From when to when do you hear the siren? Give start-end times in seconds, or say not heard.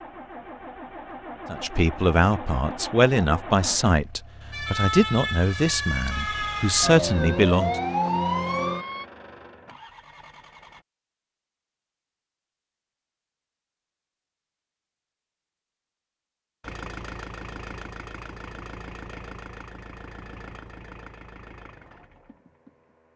4.5-9.1.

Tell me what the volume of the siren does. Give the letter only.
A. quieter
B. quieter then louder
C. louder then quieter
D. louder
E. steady
D.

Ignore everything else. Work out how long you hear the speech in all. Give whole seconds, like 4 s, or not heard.
6 s.